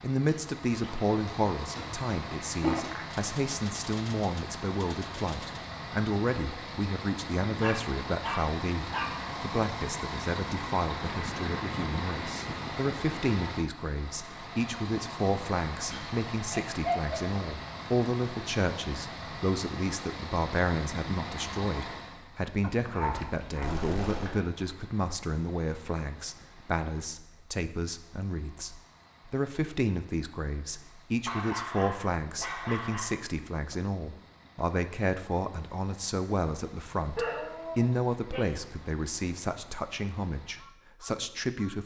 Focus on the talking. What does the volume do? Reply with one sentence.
The loudness of the talking stays about the same.